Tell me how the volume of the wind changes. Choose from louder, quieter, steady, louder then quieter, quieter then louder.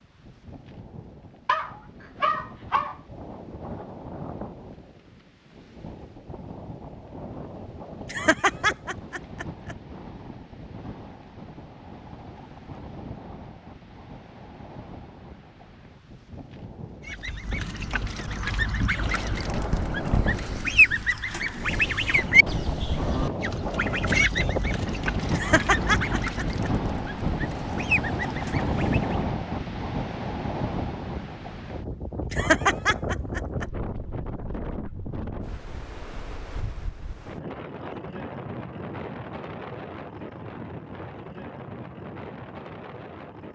louder then quieter.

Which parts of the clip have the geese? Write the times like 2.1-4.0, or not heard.
17.1-29.3.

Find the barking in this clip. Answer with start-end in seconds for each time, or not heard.
1.4-3.0.